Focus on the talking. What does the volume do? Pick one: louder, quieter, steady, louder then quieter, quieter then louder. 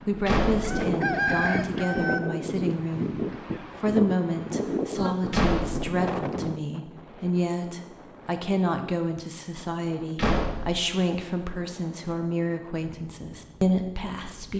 steady.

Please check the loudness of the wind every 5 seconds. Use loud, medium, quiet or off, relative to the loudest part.
loud, medium, quiet.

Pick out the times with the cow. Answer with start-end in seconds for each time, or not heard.
not heard.